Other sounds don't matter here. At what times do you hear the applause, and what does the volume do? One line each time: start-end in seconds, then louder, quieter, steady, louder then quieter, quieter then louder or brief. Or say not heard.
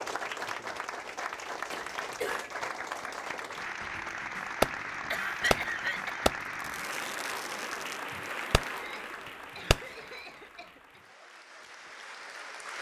0.0-12.7 quieter.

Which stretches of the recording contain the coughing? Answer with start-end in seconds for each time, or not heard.
1.7-2.5, 5.1-6.3, 8.8-11.0.